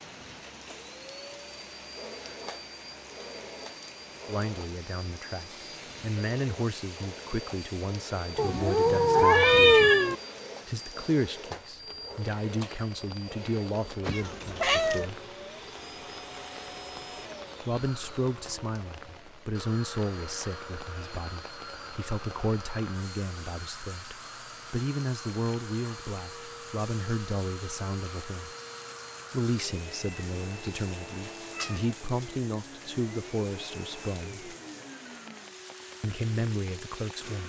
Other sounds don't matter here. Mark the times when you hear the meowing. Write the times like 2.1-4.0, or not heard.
8.3-10.2, 14.1-15.1, 29.9-30.7, 31.6-32.3.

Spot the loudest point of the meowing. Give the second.
10 s.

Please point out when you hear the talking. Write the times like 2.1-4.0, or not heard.
4.2-9.9, 10.7-15.2, 17.6-28.5, 29.3-34.5, 36.0-37.4.